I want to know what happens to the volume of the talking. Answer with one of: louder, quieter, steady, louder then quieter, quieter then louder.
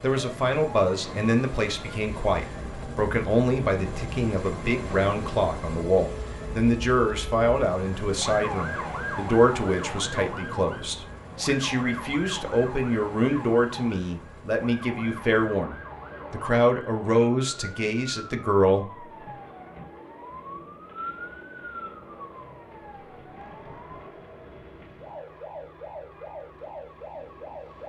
steady.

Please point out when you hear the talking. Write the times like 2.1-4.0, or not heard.
0.0-19.1.